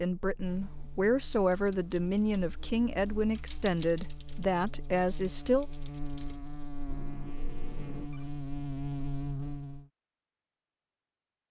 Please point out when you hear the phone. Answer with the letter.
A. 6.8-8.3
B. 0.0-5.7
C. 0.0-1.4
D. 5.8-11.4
A.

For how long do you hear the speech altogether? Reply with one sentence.
You can hear the speech for 6 seconds altogether.